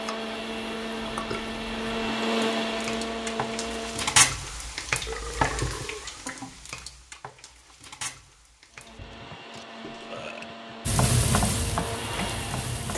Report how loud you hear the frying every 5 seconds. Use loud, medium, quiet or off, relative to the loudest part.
loud, medium, loud.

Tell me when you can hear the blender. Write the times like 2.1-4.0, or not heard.
0.0-4.3, 8.7-12.9.